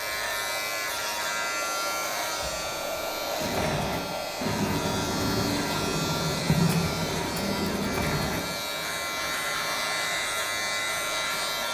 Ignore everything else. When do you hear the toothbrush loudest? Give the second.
7 s.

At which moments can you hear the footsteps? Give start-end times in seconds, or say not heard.
not heard.